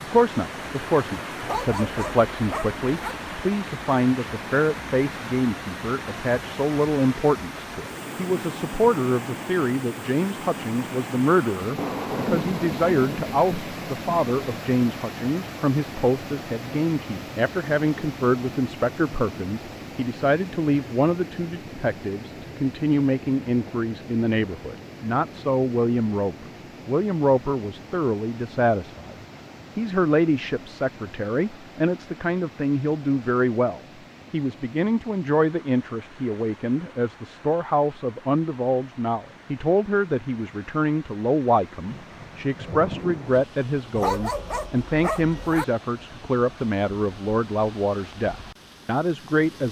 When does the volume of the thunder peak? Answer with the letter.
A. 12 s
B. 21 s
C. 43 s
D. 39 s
A.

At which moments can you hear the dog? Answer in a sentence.
You can hear the dog from 1.4 to 3.1 s and from 44.0 to 45.6 s.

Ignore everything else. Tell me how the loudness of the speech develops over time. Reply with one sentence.
The volume of the speech stays about the same.